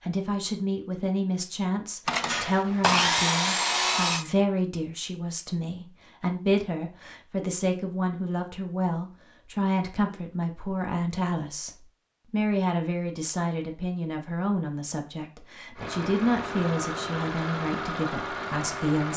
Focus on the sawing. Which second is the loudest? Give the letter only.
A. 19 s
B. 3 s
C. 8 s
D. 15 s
B.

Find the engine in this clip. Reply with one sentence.
You can hear the engine from 15.8 to 19.1 s.